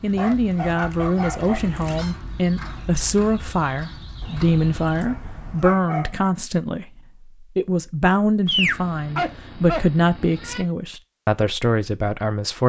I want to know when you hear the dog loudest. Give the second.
9 s.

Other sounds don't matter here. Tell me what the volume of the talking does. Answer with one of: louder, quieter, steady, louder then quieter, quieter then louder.
steady.